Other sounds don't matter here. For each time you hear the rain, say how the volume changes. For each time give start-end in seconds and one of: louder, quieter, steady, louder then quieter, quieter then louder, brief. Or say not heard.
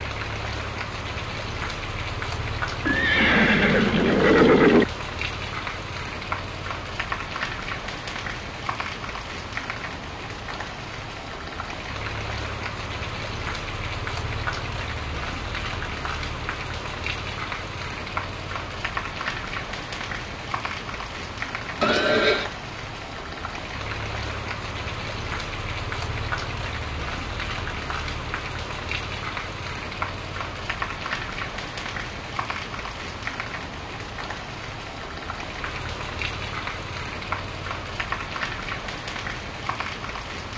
0.0-40.5 steady.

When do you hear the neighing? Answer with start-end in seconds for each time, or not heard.
2.9-4.8, 21.8-22.5.